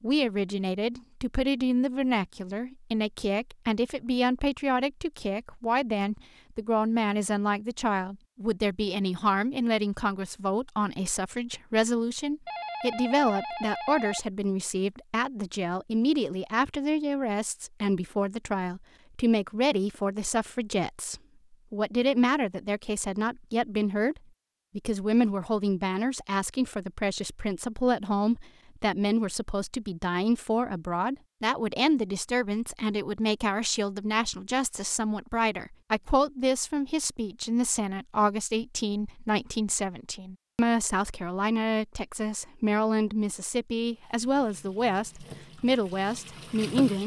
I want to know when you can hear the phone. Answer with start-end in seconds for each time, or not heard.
12.4-14.2.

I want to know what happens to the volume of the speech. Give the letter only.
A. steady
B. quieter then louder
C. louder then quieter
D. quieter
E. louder
A.